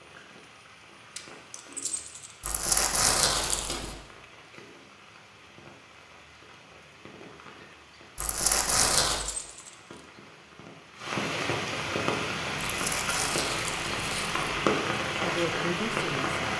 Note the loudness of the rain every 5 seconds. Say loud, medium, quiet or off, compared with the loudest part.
quiet, quiet, loud, loud.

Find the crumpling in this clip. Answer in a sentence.
You can hear the crumpling from 2.4 to 4.0 s, from 8.2 to 9.2 s and from 12.7 to 14.4 s.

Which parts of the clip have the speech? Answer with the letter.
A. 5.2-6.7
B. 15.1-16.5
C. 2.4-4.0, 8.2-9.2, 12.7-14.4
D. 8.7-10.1
B.